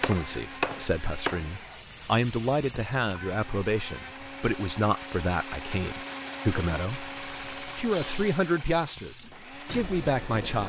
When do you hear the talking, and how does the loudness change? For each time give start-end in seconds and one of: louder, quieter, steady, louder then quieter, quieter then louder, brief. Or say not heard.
0.0-10.6 steady.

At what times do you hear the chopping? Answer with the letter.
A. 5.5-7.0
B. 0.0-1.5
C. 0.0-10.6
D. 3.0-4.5
B.